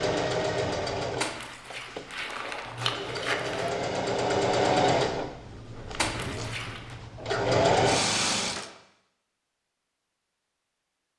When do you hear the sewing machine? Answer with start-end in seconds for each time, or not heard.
0.0-8.7.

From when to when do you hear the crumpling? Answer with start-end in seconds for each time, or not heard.
1.2-3.7, 6.0-7.0.